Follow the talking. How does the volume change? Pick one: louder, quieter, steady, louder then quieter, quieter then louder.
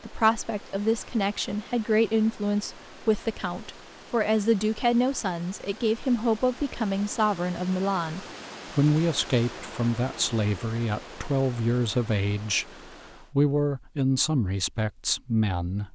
steady.